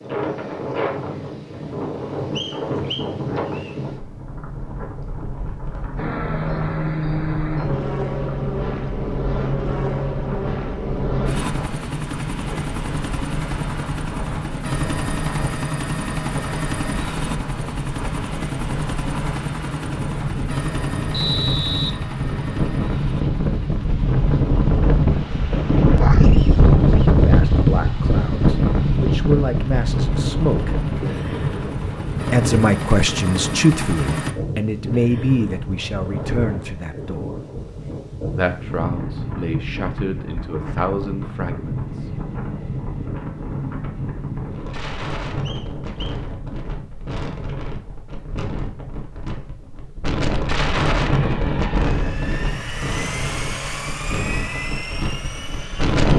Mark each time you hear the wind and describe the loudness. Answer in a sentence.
The wind can be heard from 0.0 to 56.1 s, getting louder then quieter.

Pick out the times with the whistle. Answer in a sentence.
You can hear the whistle from 2.4 to 3.8 s, from 21.1 to 21.9 s and from 45.5 to 46.1 s.